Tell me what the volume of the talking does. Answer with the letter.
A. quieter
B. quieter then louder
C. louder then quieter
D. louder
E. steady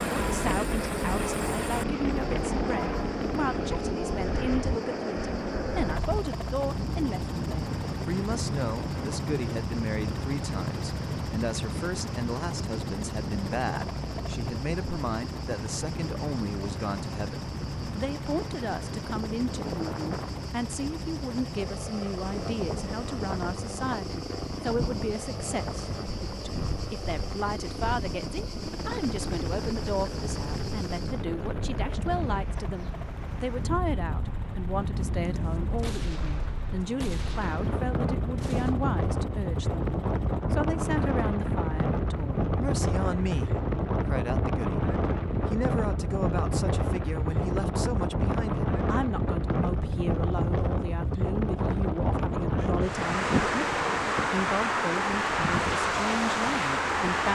E.